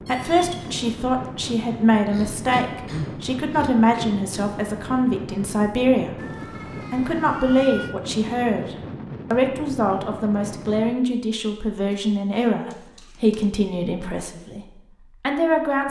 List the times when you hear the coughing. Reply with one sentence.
You can hear the coughing from 2.0 to 4.0 s and from 12.7 to 13.5 s.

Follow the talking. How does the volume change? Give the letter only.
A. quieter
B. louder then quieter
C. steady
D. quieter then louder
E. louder
C.